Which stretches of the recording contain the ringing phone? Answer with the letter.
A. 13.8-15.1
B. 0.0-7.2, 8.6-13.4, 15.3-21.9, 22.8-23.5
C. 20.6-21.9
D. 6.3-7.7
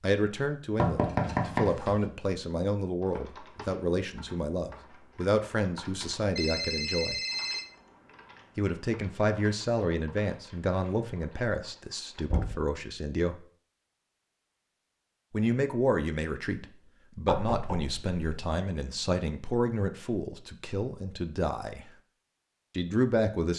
D.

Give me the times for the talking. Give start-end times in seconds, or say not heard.
0.0-7.2, 8.6-13.4, 15.3-21.9, 22.8-23.5.